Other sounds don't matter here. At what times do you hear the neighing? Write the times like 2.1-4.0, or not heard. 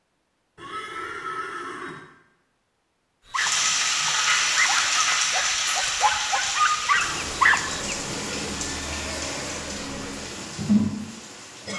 0.6-2.0, 7.7-10.2.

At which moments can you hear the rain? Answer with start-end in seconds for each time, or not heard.
3.3-11.7.